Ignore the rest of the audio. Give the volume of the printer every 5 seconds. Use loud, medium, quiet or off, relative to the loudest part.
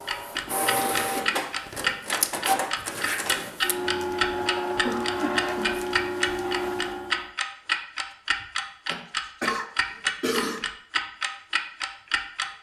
loud, loud, off.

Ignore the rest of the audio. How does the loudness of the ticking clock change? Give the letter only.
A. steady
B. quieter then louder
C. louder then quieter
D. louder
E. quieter
A.